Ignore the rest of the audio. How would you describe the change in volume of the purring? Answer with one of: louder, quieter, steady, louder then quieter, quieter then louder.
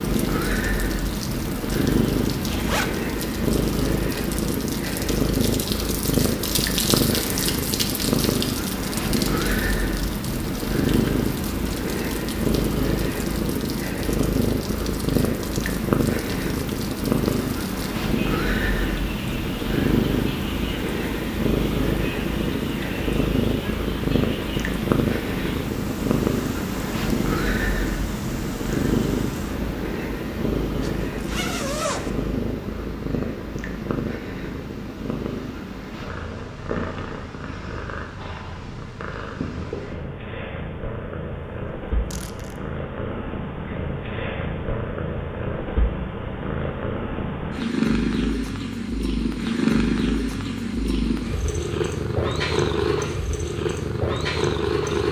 quieter then louder.